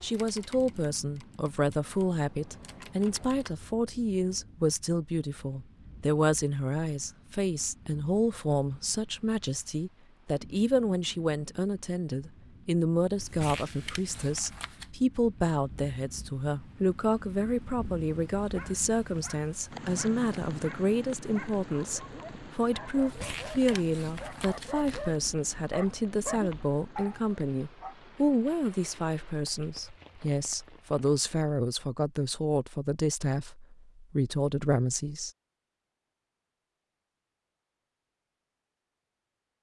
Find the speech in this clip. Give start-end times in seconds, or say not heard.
0.0-35.3.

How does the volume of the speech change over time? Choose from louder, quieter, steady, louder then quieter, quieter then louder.
steady.